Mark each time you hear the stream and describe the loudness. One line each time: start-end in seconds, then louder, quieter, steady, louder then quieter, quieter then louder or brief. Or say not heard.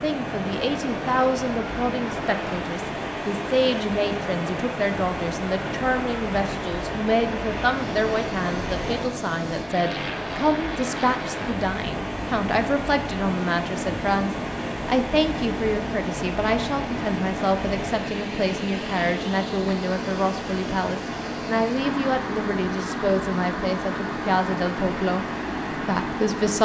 0.0-26.6 steady.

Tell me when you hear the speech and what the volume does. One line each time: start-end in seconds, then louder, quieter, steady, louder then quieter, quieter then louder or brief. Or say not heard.
0.0-26.6 steady.